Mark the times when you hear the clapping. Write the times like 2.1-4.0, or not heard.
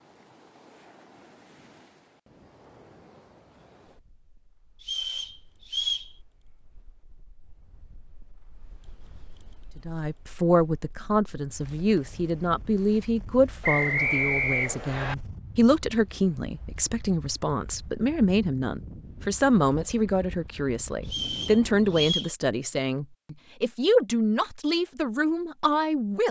not heard.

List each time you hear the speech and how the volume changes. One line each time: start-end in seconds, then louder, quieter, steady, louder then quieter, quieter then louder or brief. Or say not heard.
9.8-26.2 steady.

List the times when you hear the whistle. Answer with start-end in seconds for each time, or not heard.
4.8-6.1, 13.6-15.2, 21.1-22.3.